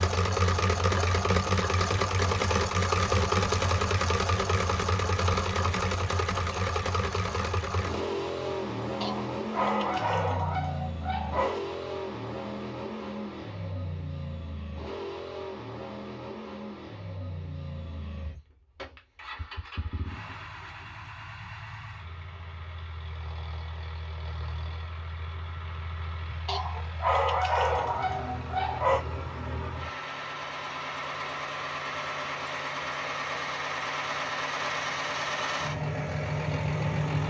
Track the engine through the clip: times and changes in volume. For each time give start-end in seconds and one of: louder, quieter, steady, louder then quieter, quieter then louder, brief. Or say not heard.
0.0-37.2 quieter then louder.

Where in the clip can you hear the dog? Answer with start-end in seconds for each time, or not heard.
9.0-11.7, 26.4-29.1.